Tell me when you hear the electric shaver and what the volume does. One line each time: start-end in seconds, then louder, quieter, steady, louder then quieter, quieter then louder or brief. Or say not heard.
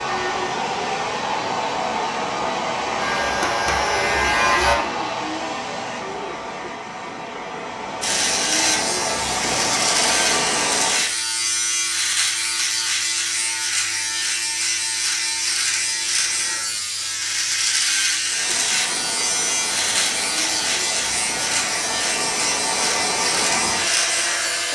3.0-4.8 brief
8.0-24.6 steady.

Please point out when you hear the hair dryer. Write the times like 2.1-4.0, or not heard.
0.0-11.1, 18.2-24.6.